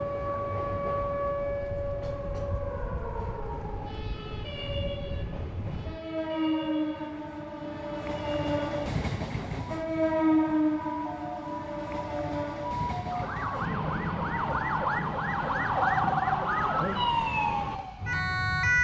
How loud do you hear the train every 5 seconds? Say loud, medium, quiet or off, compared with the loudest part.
medium, loud, loud, medium.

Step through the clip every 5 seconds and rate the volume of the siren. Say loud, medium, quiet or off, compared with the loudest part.
medium, quiet, medium, loud.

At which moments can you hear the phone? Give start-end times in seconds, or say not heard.
15.7-16.4.